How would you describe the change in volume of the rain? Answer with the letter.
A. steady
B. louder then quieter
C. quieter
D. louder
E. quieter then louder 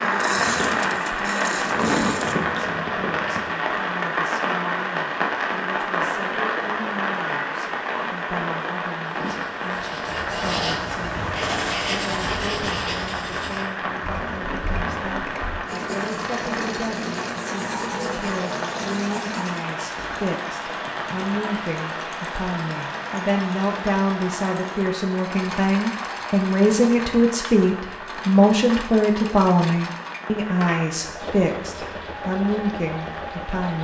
C.